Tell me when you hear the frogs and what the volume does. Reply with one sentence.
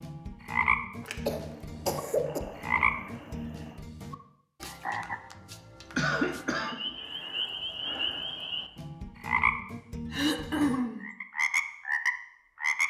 You can hear the frogs from 0.0 to 12.8 s, getting quieter then louder.